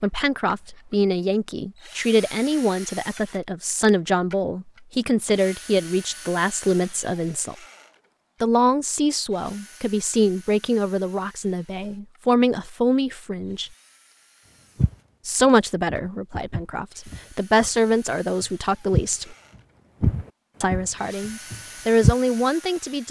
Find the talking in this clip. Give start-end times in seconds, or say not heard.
0.0-7.5, 8.4-13.7, 15.2-19.4, 20.6-23.0.